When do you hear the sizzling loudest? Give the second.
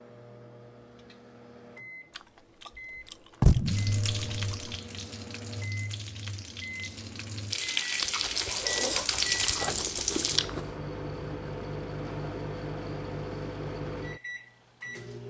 9 s.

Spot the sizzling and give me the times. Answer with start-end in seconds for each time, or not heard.
3.6-10.4.